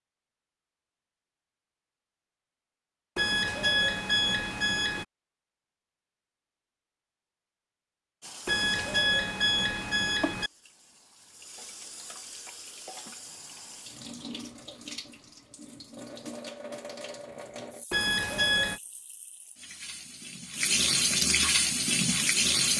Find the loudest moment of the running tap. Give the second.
21 s.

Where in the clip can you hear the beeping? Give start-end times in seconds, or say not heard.
3.1-5.0, 8.4-10.5, 17.9-18.8.